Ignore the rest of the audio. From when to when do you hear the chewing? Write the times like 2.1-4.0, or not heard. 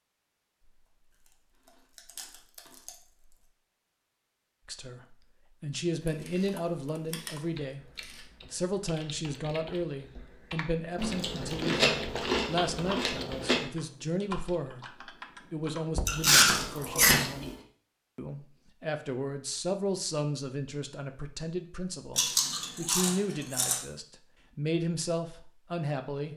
1.6-3.4, 6.1-8.2, 10.9-13.7, 16.1-17.6, 22.1-23.8.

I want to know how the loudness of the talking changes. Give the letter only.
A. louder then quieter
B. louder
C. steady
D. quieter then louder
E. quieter
C.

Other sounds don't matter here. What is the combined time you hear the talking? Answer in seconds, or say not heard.
21 s.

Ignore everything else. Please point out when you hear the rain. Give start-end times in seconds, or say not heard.
not heard.